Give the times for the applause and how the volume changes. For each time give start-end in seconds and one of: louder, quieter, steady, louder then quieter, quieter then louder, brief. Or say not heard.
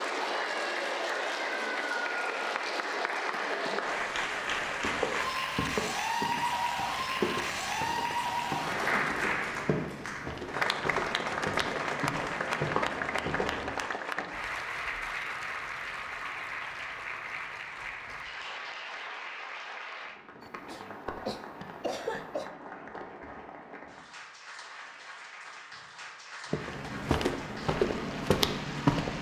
0.0-29.1 quieter.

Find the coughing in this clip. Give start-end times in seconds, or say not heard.
20.4-22.6.